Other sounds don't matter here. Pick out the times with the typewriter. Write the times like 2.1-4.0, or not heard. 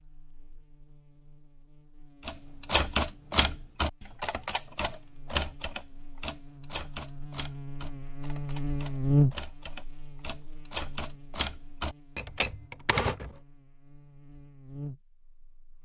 2.2-13.3.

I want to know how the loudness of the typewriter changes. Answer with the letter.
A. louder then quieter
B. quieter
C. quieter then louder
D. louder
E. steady
C.